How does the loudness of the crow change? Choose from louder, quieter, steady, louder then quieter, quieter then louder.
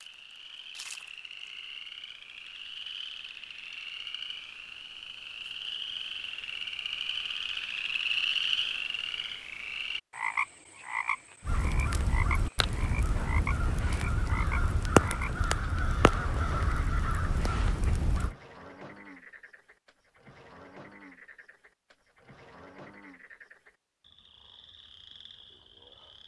louder then quieter.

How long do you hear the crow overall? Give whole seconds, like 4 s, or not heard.
7 s.